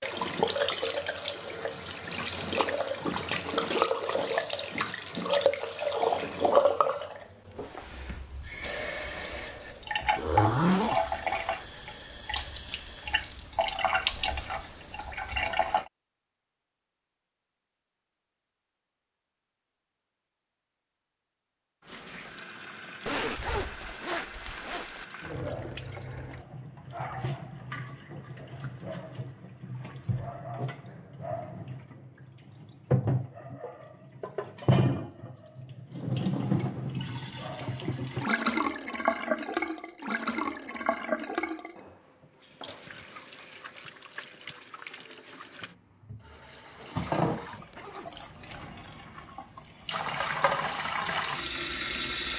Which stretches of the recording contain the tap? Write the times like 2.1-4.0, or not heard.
0.0-15.8, 21.8-52.3.